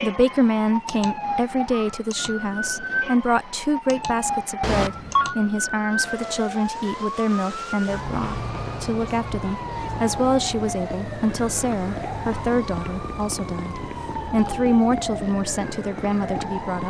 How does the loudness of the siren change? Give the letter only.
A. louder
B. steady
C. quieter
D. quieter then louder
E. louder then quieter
B.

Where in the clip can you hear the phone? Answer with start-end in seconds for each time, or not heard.
4.6-5.3.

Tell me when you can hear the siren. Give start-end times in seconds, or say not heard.
0.0-16.8.